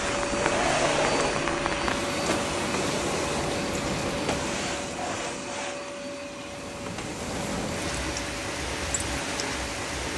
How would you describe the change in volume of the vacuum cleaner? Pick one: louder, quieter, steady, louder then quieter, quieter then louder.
quieter.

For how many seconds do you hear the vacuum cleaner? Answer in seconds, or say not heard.
10 s.